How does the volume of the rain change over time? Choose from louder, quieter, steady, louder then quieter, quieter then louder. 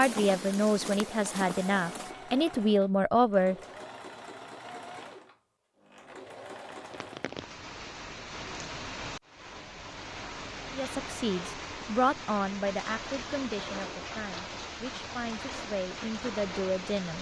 steady.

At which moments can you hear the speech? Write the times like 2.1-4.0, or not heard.
0.0-3.5, 10.7-17.1.